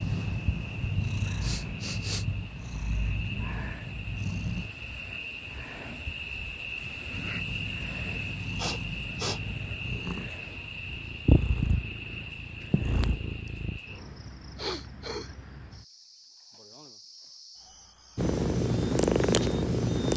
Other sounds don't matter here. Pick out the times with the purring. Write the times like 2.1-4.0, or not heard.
0.0-4.7, 7.1-13.8, 18.1-20.1.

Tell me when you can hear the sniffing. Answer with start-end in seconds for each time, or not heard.
1.2-2.2, 8.6-9.4, 14.6-15.3.